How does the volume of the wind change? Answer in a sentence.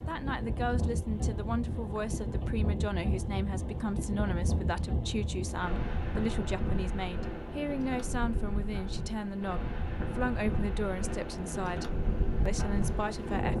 The loudness of the wind stays about the same.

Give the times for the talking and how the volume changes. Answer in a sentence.
You can hear the talking from 0.1 to 13.5 s, at a steady volume.